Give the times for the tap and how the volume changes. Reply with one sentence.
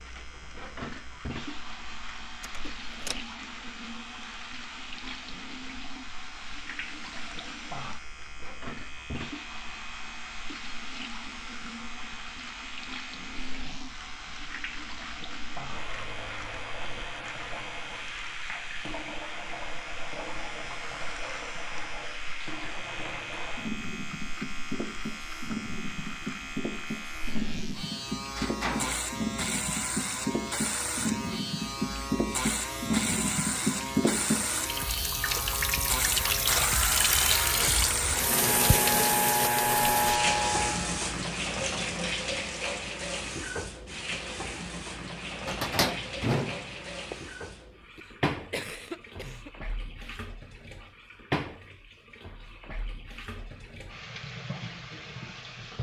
You can hear the tap from 0.0 to 55.7 s, getting louder then quieter.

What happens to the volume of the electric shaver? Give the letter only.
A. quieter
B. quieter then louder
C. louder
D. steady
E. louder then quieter
C.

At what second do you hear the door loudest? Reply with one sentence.
The loudest moment of the door is at 46 seconds.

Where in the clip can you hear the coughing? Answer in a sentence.
The coughing can be heard from 48.0 to 49.5 s.